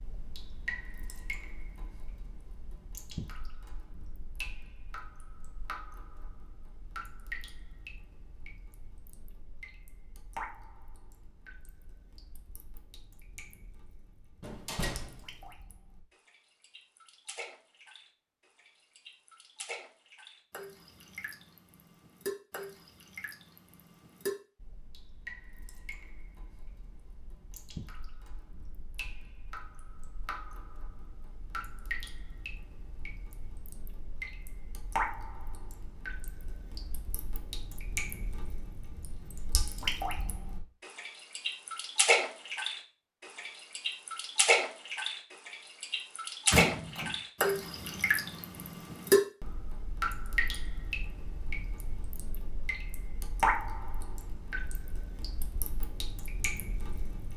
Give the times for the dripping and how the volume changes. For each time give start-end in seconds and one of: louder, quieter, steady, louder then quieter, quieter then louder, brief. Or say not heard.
0.0-57.3 louder.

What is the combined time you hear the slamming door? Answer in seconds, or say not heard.
2 s.